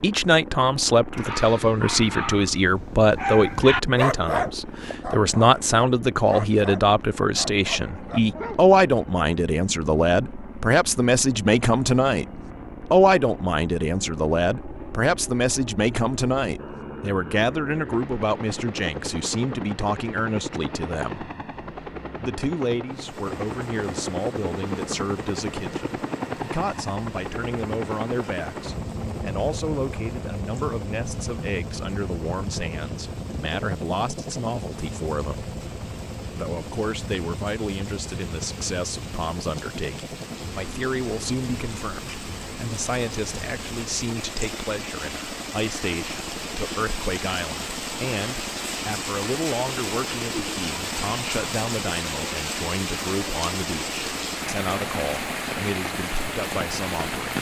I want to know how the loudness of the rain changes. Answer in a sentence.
The volume of the rain goes up.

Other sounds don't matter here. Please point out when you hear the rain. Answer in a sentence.
You can hear the rain from 22.9 to 57.3 s.